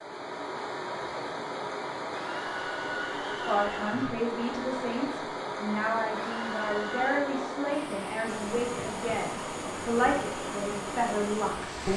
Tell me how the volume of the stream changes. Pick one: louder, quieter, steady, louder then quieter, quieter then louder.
steady.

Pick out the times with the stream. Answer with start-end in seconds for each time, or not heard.
0.0-11.9.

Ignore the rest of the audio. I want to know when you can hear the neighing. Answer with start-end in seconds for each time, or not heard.
2.1-4.2, 6.2-7.1.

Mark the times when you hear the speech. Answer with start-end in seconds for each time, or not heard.
3.5-11.9.